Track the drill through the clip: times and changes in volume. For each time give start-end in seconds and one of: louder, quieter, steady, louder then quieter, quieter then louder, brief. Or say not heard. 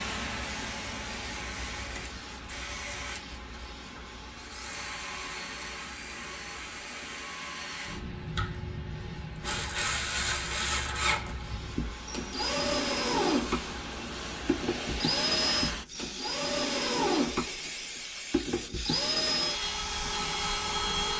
0.2-21.1 louder.